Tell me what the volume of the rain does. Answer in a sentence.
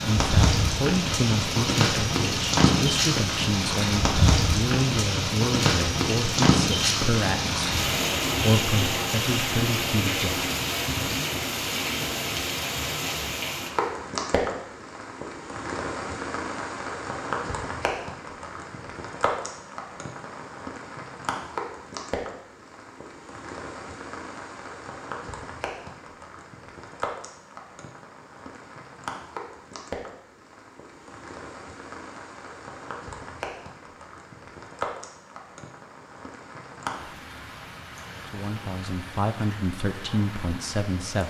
The loudness of the rain goes down.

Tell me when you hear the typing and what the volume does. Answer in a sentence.
The typing can't be heard in this clip.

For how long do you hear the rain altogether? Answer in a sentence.
You can hear the rain for 41 seconds altogether.